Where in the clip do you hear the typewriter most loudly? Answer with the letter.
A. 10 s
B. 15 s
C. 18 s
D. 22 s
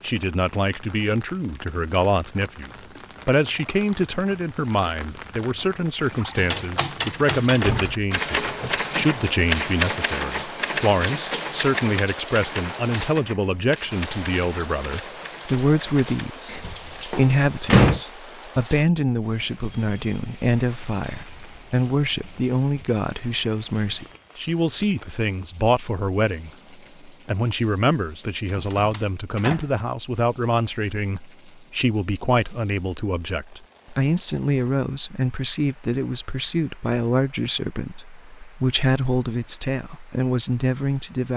A.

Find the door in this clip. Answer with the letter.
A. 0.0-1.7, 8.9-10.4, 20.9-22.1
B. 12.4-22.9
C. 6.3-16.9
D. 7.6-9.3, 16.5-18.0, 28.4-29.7
D.